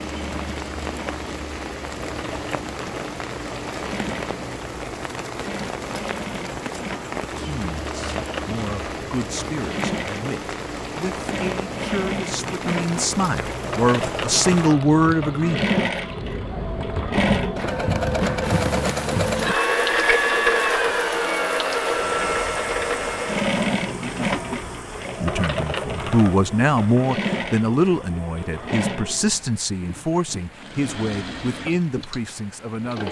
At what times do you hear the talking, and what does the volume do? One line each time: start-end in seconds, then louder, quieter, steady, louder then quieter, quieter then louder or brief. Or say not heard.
7.3-15.7 louder
25.2-33.0 quieter.